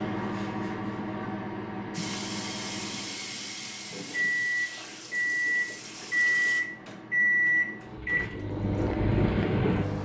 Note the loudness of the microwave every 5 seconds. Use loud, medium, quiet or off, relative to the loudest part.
medium, loud.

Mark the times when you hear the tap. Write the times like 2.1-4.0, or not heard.
1.9-6.6.